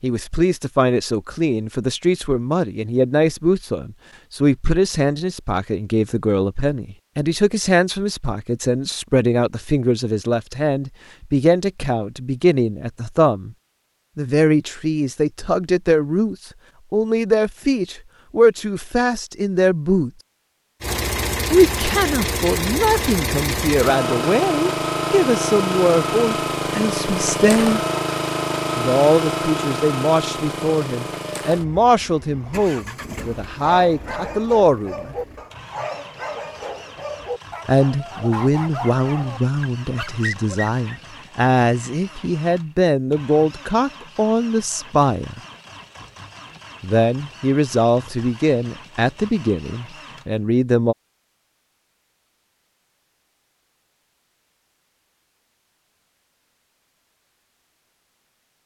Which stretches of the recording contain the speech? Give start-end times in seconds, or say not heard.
0.0-13.6, 14.2-20.1, 21.5-27.8, 28.8-35.1, 37.6-45.4, 46.8-51.0.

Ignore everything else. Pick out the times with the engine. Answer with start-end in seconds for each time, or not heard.
20.8-50.5.